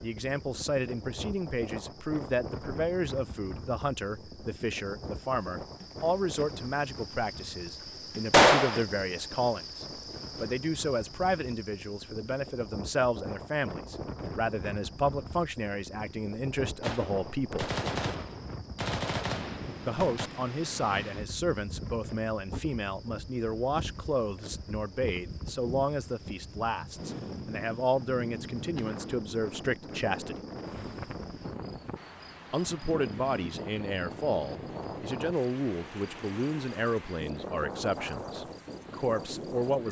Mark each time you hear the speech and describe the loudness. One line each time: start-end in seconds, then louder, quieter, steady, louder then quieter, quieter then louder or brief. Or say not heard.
0.0-17.7 steady
19.9-30.4 steady
32.5-39.8 steady.